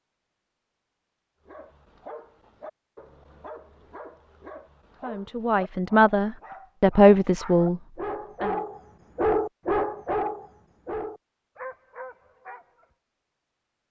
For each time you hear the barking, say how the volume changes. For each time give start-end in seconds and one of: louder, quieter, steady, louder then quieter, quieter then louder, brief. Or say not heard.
1.4-12.8 louder then quieter.